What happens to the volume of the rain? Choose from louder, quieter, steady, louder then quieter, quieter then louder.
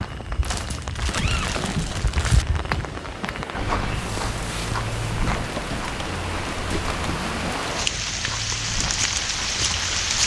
louder.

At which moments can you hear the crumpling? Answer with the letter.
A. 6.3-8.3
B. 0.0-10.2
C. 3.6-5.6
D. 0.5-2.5
D.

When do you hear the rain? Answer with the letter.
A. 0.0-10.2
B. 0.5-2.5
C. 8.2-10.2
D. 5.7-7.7
A.